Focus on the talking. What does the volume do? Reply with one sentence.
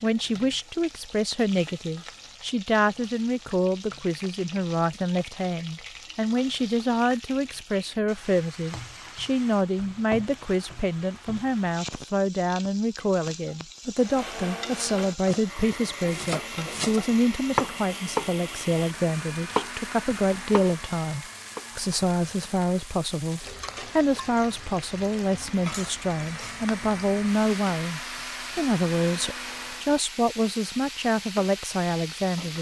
The loudness of the talking stays about the same.